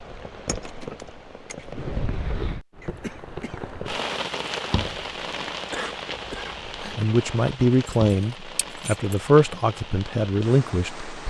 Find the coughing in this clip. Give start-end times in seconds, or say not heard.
2.8-3.6, 5.7-7.1.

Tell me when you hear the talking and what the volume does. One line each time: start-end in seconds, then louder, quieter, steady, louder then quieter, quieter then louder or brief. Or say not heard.
6.8-11.2 steady.